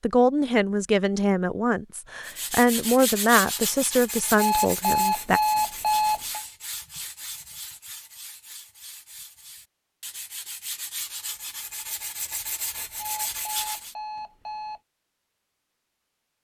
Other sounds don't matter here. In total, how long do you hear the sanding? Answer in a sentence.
You can hear the sanding for 12 seconds altogether.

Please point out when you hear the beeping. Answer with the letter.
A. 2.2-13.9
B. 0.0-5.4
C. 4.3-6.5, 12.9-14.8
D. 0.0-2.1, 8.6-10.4
C.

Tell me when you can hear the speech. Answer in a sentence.
The speech can be heard from 0.0 to 5.4 s.